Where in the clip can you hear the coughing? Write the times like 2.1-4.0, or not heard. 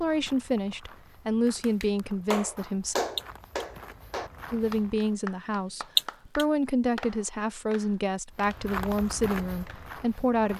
3.1-3.6, 6.0-6.5.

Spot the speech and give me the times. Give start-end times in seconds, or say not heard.
0.0-3.0, 4.5-10.5.